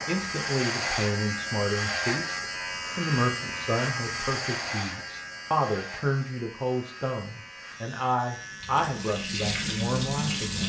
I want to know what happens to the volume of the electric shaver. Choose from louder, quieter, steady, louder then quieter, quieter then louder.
quieter.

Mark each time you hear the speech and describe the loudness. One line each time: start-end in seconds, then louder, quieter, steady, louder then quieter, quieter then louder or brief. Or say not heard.
0.0-10.6 steady.